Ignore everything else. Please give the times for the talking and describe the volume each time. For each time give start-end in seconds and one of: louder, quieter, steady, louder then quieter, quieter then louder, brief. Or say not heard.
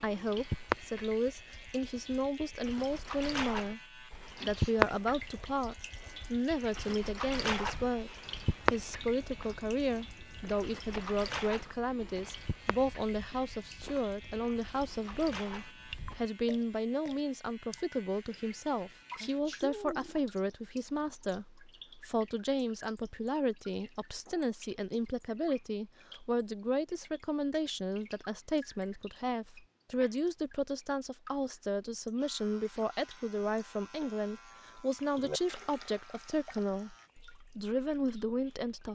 0.0-38.9 steady.